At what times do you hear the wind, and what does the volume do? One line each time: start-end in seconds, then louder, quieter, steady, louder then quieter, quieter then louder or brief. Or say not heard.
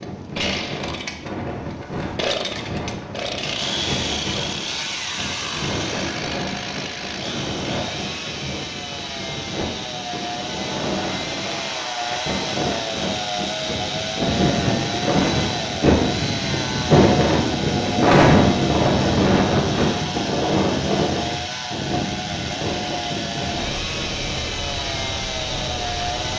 0.0-26.3 louder then quieter.